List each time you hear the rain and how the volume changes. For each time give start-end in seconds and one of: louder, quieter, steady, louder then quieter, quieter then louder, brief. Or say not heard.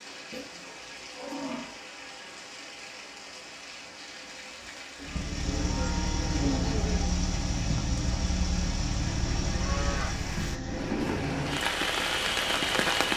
0.0-13.1 louder.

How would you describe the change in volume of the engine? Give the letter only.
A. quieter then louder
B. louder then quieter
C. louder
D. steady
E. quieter
E.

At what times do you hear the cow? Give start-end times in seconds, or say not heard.
0.3-1.9, 5.0-7.0, 9.1-11.0.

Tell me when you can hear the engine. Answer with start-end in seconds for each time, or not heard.
5.0-13.1.